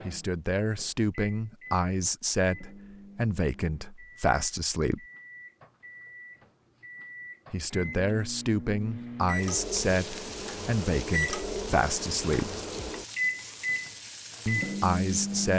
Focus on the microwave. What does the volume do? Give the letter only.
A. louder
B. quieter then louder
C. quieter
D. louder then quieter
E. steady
A.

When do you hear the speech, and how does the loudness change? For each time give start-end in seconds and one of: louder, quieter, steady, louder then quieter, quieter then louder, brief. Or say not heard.
0.1-5.0 steady
7.5-12.6 steady
14.4-15.5 brief.